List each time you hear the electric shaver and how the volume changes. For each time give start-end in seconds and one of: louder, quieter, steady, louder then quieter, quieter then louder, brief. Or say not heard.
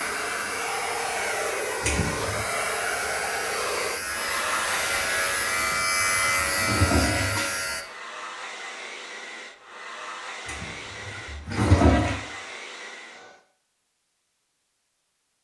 0.0-7.8 louder.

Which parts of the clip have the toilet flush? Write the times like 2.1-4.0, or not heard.
1.8-2.5, 5.5-7.5, 10.4-12.2.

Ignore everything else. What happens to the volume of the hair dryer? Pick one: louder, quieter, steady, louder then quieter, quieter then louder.
quieter.